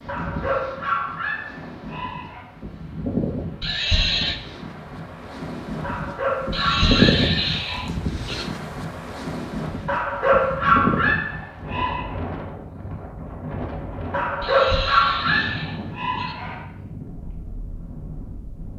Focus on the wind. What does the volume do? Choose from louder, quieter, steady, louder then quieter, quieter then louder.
louder then quieter.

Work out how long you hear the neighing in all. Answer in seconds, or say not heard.
5 s.